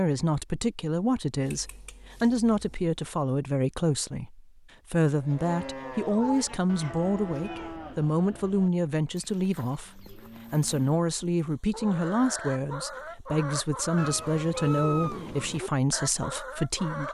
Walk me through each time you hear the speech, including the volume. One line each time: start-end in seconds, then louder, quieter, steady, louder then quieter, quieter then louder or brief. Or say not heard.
0.0-17.0 steady.